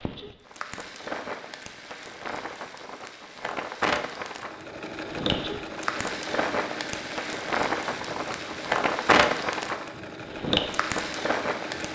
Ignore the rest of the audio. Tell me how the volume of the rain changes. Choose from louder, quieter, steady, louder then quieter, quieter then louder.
louder.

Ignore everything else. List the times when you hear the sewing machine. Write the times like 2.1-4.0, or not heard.
4.4-11.9.